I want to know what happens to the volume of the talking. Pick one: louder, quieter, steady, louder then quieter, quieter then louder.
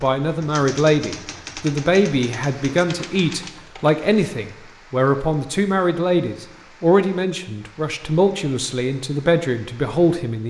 steady.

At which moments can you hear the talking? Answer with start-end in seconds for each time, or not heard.
0.0-10.4.